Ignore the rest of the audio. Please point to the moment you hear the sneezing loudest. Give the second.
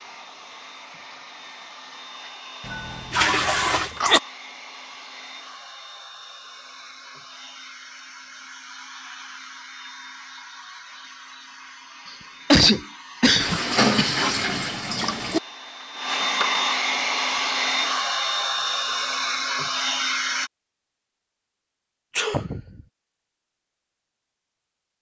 13 s.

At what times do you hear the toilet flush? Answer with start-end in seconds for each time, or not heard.
2.6-3.9, 13.3-15.4.